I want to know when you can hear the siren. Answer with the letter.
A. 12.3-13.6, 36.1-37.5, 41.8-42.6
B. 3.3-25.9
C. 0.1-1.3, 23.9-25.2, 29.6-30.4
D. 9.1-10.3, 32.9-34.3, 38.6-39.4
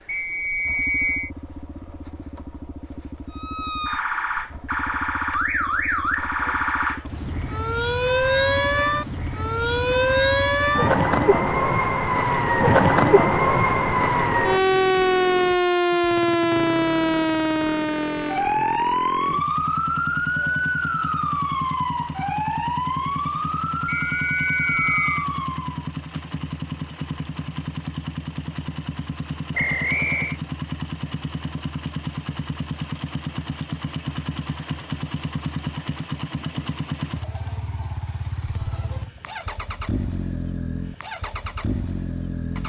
B.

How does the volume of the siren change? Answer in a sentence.
The volume of the siren goes up, then down.